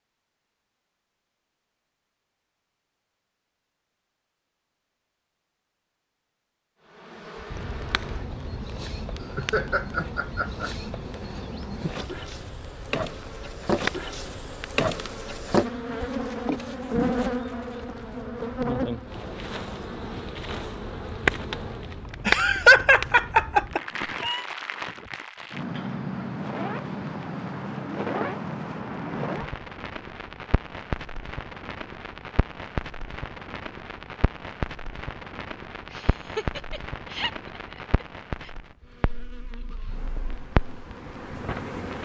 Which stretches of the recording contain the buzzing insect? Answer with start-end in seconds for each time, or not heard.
6.8-22.1, 38.8-42.0.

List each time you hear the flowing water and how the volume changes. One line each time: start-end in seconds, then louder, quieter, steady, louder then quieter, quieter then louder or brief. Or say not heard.
not heard.